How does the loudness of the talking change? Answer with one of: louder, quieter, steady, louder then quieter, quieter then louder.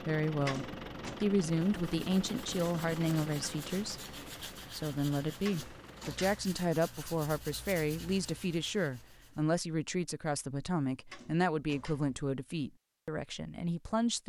steady.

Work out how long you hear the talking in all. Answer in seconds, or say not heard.
14 s.